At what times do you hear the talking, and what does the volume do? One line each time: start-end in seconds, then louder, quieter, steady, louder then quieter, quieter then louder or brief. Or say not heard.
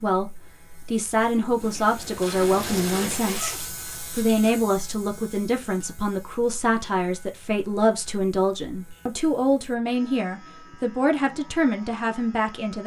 0.0-12.8 steady.